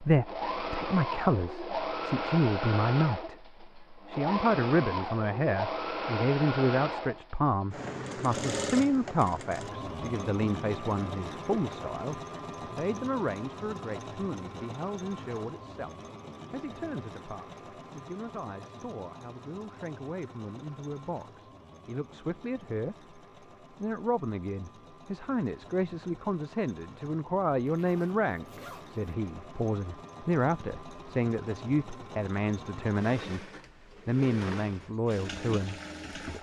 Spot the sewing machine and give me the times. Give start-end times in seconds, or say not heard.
0.0-36.3.